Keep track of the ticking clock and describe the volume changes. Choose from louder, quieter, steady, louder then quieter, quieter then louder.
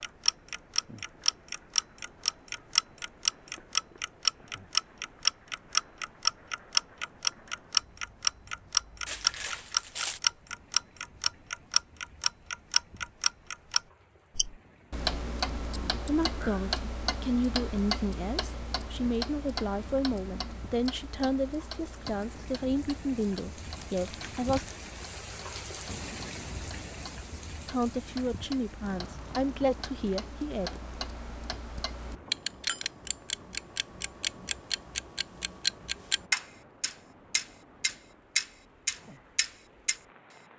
quieter then louder.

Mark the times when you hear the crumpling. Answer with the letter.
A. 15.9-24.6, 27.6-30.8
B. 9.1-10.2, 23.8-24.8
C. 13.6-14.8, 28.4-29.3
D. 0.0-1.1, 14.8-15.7
B.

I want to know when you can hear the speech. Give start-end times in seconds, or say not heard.
15.9-24.6, 27.6-30.8.